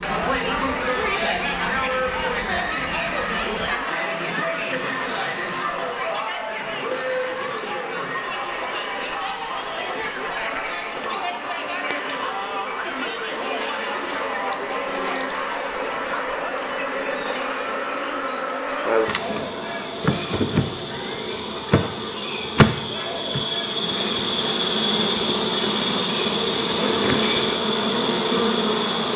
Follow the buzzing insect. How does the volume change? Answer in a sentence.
The loudness of the buzzing insect goes up.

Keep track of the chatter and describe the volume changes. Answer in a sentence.
The volume of the chatter goes down.